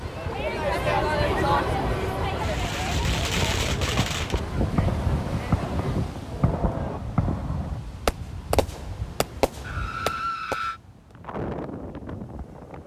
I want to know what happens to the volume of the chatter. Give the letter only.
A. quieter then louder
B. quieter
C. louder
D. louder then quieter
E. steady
B.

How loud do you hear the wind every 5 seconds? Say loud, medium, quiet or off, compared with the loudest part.
loud, loud, medium.